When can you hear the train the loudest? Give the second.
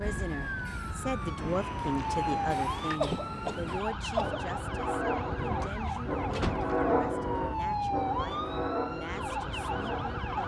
7 s.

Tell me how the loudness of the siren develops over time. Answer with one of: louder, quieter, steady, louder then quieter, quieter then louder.
steady.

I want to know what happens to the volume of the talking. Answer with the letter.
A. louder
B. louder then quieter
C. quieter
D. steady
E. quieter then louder
C.